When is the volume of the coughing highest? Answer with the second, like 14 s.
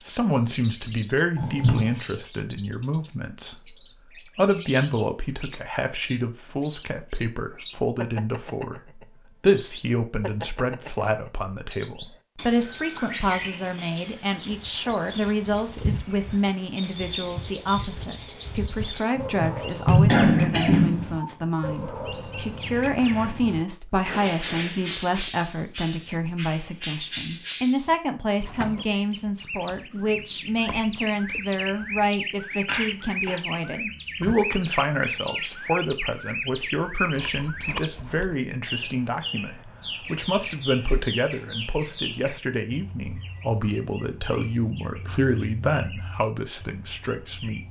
20 s.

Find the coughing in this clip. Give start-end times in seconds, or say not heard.
1.4-1.9, 19.1-21.4, 32.6-33.4.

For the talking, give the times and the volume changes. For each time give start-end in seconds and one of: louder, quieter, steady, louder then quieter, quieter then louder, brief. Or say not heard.
0.0-47.6 steady.